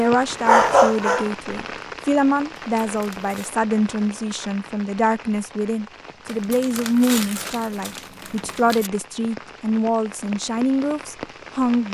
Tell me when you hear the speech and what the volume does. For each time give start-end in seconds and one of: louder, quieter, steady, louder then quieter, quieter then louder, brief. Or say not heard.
0.0-11.8 steady.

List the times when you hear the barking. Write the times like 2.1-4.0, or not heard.
0.5-1.4.